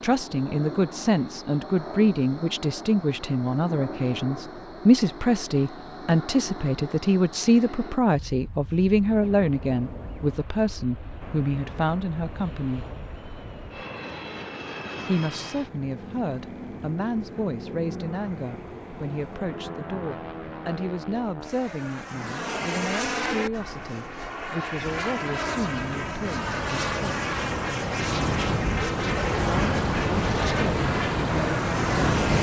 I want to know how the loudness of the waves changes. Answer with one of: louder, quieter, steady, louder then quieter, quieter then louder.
louder.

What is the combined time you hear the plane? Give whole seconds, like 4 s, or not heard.
32 s.